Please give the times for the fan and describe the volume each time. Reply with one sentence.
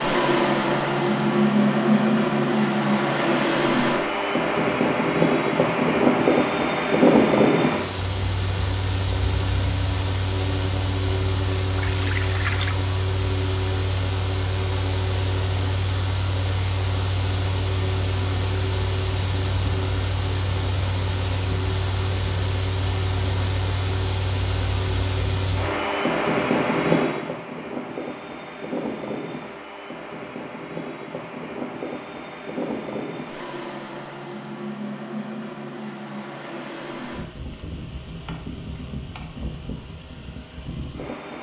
The fan can be heard from 0.0 to 41.3 s, getting quieter.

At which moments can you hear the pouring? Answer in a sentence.
The pouring can be heard from 11.8 to 12.8 s.